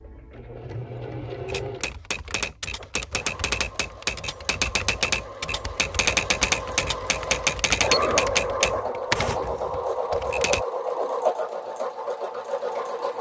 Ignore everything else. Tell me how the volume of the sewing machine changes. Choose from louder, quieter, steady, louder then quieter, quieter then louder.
quieter then louder.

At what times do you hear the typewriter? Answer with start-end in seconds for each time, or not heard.
1.4-10.7.